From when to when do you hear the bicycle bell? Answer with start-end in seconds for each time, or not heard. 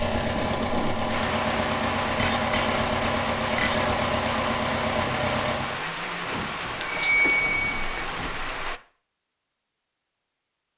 2.1-3.9, 6.2-8.1.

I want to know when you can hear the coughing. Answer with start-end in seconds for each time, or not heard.
not heard.